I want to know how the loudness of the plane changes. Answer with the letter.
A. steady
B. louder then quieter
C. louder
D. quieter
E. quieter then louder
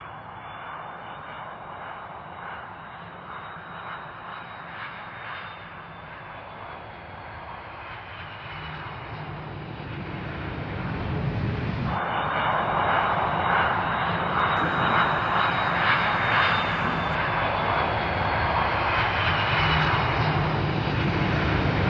C.